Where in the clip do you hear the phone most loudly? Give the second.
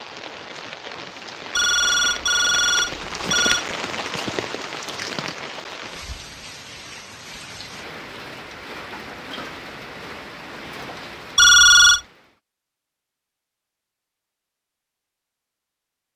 12 s.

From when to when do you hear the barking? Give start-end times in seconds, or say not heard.
not heard.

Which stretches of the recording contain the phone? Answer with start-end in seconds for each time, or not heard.
1.6-3.6, 11.3-12.0.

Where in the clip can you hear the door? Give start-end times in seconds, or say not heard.
not heard.